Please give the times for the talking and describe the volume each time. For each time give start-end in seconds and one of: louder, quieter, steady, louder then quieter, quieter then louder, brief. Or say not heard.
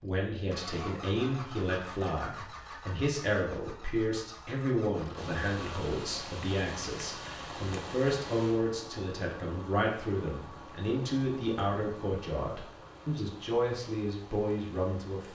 0.0-15.2 steady.